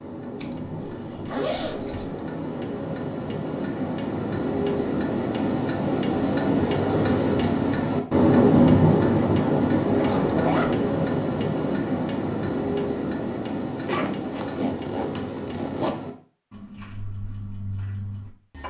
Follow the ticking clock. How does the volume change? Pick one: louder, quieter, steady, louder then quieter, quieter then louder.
louder then quieter.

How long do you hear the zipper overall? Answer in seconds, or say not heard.
5 s.